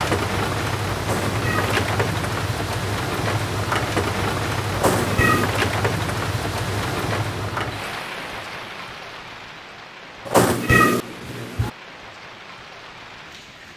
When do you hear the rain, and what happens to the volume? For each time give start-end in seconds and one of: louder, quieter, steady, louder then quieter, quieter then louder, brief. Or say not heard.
0.0-13.7 quieter.